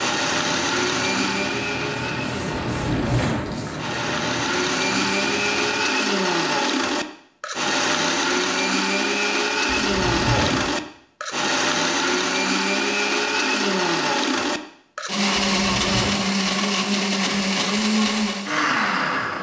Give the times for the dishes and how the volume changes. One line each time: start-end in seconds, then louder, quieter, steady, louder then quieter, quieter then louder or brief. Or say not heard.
not heard.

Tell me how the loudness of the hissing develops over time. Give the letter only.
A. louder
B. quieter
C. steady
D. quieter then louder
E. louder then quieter
E.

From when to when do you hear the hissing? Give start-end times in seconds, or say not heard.
0.0-6.0.